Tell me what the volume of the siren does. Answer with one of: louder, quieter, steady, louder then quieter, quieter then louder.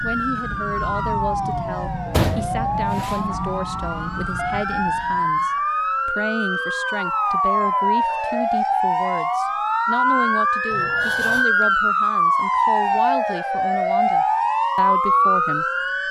louder.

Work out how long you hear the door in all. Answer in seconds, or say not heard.
2 s.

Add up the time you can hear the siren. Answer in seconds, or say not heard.
16 s.